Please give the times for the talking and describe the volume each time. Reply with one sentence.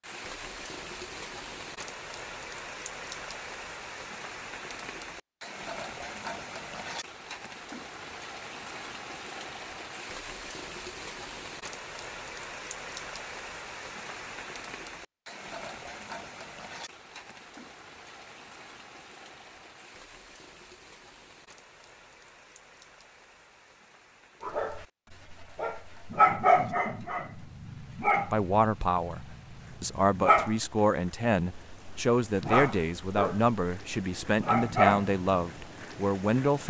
You can hear the talking from 28.2 to 36.6 s, at a steady volume.